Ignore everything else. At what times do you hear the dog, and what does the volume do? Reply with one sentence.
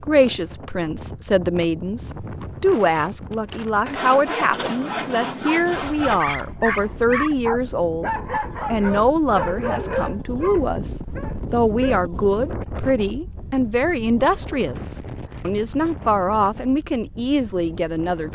You can hear the dog from 6.0 to 12.0 s, getting quieter.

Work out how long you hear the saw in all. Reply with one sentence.
The saw can be heard for 2 seconds in total.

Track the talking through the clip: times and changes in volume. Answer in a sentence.
The talking can be heard from 0.0 to 18.3 s, at a steady volume.